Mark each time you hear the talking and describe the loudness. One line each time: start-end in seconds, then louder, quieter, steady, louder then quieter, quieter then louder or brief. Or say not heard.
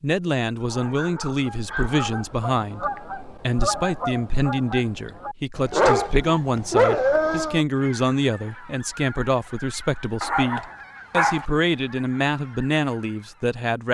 0.0-13.8 steady.